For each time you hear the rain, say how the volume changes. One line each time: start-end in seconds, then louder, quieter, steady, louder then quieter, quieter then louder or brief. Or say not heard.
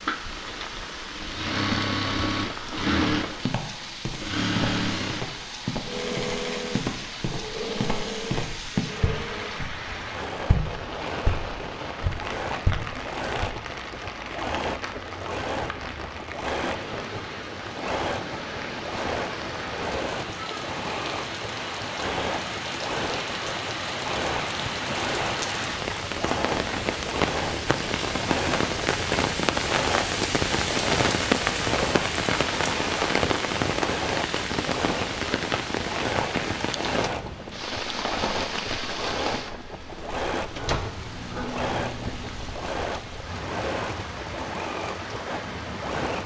0.0-46.2 louder then quieter.